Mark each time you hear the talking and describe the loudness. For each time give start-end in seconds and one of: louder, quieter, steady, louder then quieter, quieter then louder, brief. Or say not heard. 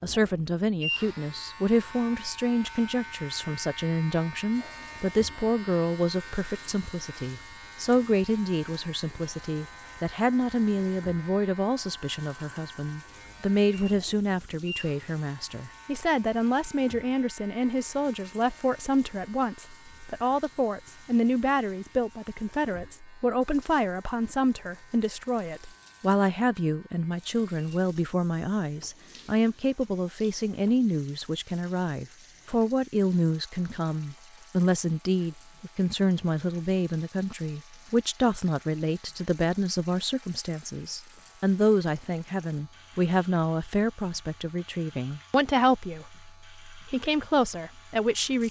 0.0-48.4 steady.